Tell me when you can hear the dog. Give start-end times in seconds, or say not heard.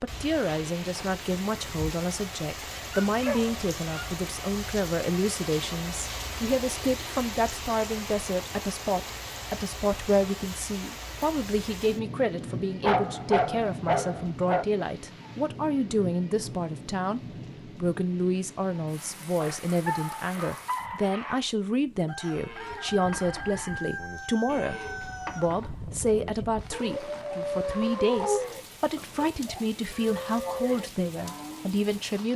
3.0-4.2, 12.8-14.7, 19.4-21.4, 26.7-28.4.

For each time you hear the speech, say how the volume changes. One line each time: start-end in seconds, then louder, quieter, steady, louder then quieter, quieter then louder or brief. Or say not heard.
0.0-32.3 steady.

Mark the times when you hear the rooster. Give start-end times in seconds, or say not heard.
22.1-25.6.